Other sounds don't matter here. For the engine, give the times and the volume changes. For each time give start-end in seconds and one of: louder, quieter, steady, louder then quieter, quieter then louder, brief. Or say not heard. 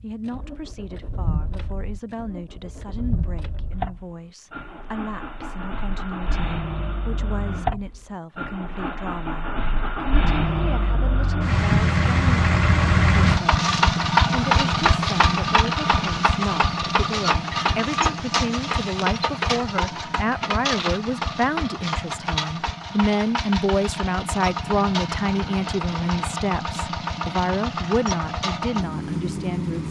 0.0-29.8 louder then quieter.